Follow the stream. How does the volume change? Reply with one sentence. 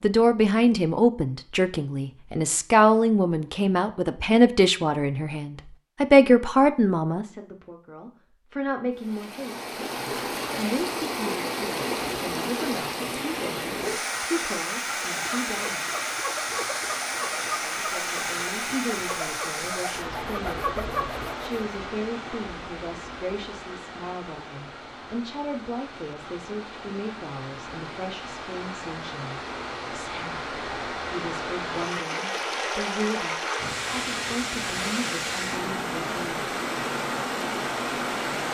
The loudness of the stream goes down, then up.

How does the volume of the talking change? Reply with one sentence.
The loudness of the talking goes down.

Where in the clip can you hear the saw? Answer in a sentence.
The saw can be heard from 15.1 to 21.5 s.